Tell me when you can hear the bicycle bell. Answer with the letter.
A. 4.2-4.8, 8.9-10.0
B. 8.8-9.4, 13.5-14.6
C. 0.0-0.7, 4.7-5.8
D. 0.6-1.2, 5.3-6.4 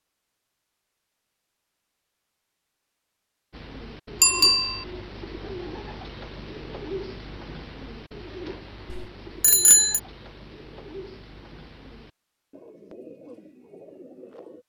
A.